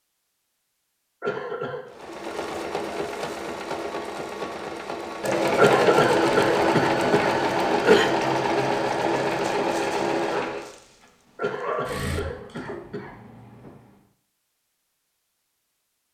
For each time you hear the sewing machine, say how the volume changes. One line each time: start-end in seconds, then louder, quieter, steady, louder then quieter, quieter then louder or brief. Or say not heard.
2.0-13.9 louder then quieter.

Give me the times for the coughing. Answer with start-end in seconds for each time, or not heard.
1.2-1.9, 5.5-8.1, 11.3-13.2.